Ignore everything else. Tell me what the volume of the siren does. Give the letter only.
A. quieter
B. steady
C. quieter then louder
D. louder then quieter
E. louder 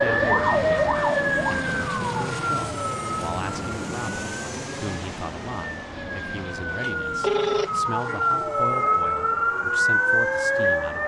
C.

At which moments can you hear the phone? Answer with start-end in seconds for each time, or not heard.
6.3-7.8.